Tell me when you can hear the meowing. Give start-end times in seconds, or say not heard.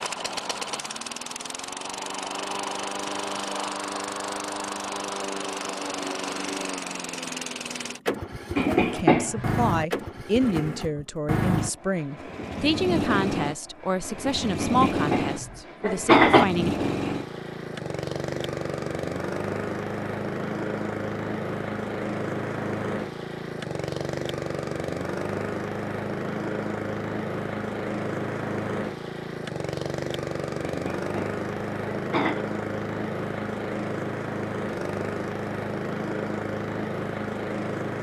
not heard.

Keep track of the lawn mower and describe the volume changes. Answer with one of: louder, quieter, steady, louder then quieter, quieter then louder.
steady.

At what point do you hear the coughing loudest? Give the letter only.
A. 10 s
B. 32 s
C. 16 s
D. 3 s
C.